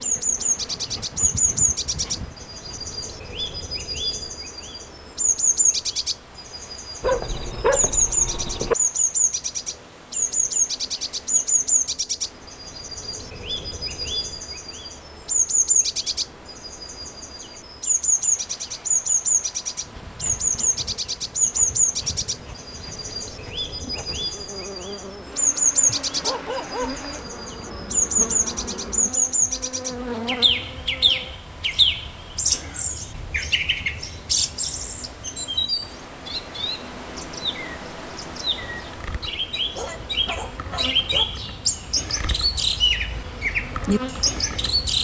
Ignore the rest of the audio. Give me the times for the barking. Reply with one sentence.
The barking can be heard from 7.0 to 8.8 s, from 26.0 to 27.8 s and from 39.5 to 41.4 s.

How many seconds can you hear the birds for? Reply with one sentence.
You can hear the birds for 45 seconds altogether.